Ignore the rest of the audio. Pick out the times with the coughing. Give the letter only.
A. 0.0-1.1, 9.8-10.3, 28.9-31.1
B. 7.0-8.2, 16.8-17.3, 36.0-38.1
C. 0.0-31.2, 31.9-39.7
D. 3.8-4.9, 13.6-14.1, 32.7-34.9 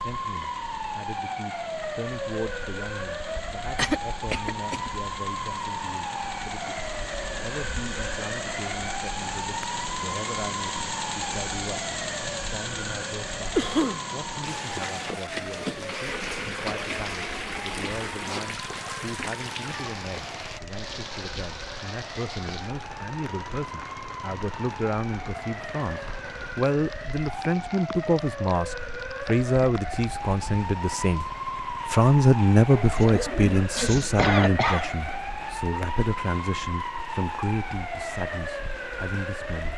D.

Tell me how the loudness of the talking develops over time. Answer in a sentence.
The loudness of the talking goes up.